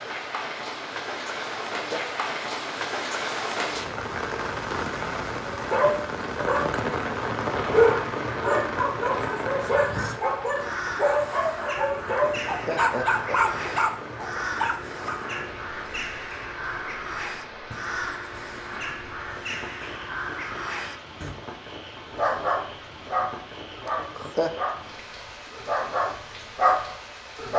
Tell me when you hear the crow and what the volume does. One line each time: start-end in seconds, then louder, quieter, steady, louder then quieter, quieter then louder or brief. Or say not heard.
9.6-21.4 steady.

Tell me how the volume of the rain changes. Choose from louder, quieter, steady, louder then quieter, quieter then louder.
quieter.